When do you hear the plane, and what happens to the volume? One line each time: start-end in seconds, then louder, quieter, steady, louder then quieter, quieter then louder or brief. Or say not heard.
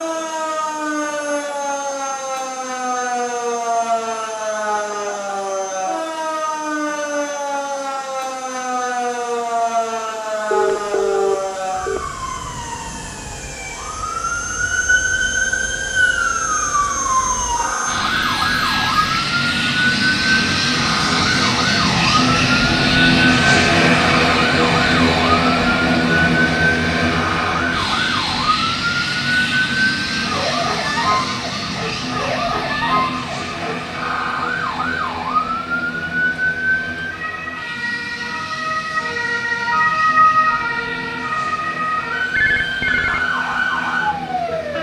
0.0-44.7 louder then quieter.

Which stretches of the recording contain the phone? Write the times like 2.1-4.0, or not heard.
10.5-12.1, 18.1-19.1, 42.4-43.2.